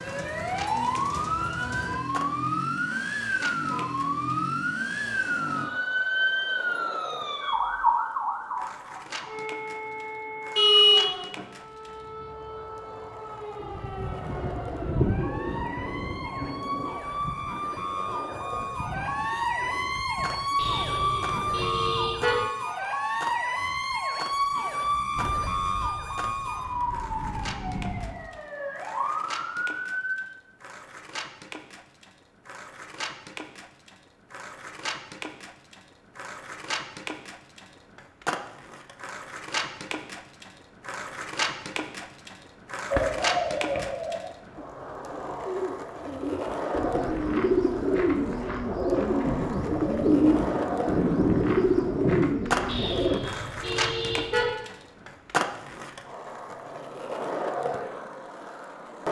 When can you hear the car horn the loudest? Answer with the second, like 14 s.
11 s.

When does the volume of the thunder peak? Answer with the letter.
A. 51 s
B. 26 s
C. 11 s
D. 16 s
A.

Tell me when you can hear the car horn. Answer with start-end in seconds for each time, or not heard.
10.6-11.4, 20.6-22.4, 52.6-54.5.